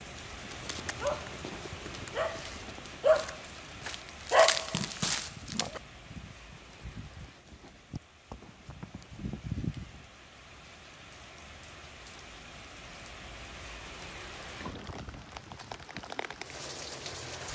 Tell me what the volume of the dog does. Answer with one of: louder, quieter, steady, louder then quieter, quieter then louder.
louder then quieter.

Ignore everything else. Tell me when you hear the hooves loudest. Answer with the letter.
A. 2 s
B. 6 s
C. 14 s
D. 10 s
D.